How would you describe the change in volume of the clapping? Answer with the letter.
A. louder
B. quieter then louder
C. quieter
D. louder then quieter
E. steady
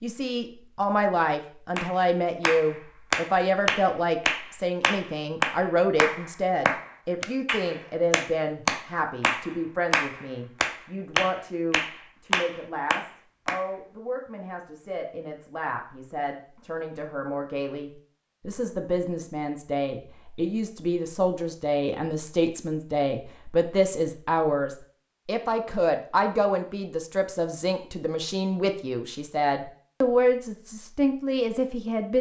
E.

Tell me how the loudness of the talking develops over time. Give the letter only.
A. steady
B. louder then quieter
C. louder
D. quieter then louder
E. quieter
D.